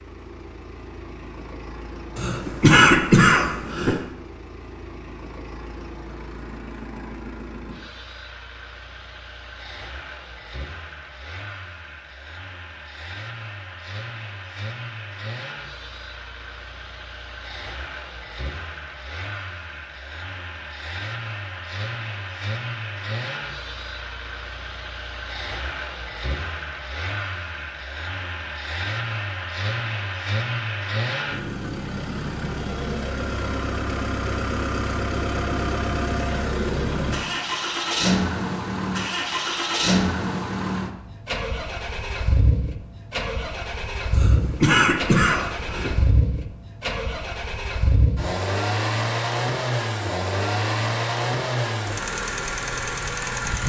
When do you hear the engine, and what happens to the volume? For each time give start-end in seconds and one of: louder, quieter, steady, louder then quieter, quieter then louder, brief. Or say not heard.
0.0-53.6 louder.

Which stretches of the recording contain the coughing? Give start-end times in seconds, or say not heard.
2.1-4.0, 44.1-45.9.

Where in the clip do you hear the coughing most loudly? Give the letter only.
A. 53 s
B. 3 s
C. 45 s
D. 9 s
B.